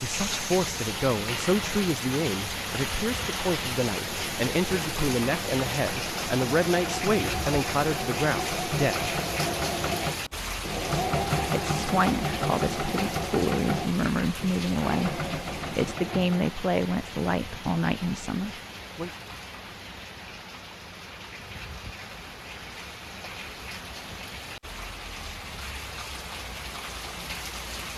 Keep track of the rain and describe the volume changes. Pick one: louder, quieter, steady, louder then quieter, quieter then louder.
quieter.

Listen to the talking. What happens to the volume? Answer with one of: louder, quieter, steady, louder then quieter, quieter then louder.
steady.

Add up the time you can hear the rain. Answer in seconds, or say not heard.
28 s.